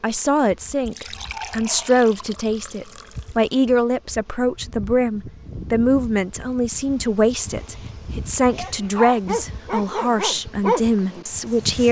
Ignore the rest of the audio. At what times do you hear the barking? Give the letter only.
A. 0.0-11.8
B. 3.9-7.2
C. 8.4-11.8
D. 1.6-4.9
C.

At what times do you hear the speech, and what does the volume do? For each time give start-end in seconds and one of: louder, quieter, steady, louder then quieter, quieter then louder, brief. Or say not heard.
0.0-11.8 steady.